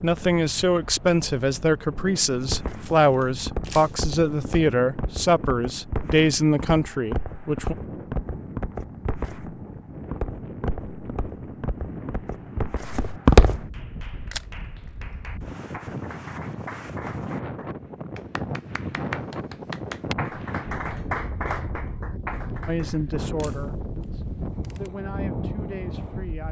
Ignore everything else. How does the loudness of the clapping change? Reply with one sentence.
The loudness of the clapping goes up.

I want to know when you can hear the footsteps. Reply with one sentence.
You can hear the footsteps from 2.5 to 13.6 s.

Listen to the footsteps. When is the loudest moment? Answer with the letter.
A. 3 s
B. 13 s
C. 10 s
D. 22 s
B.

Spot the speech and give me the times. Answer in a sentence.
You can hear the speech from 0.0 to 7.8 s and from 22.6 to 26.4 s.